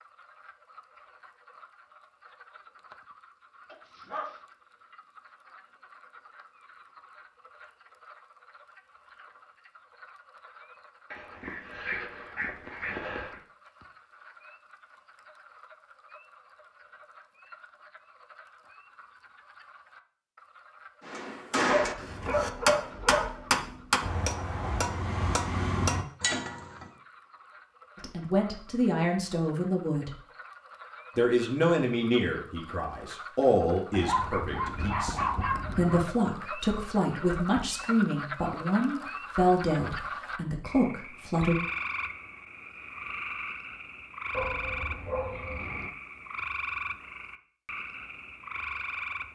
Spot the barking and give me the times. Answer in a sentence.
The barking can be heard from 3.7 to 4.4 s, from 11.1 to 13.4 s, from 21.6 to 23.9 s, from 33.9 to 36.1 s and from 44.3 to 45.9 s.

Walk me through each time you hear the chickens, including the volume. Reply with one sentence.
The chickens can't be heard in this clip.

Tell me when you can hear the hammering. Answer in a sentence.
The hammering can be heard from 21.1 to 26.9 s.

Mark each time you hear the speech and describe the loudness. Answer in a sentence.
You can hear the speech briefly from 27.9 to 30.1 s; and from 31.1 to 41.5 s, at a steady volume.